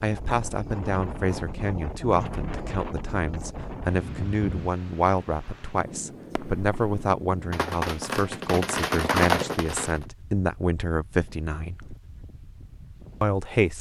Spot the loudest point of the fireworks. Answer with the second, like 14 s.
9 s.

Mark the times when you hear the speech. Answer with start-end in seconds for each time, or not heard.
0.0-11.9, 13.2-13.7.